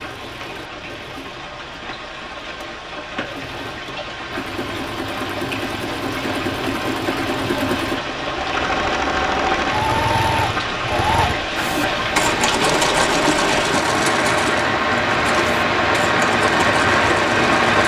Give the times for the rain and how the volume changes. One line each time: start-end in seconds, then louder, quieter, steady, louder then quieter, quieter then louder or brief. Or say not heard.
0.0-17.8 louder.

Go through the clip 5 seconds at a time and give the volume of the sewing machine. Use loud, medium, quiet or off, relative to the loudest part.
quiet, loud, loud, medium.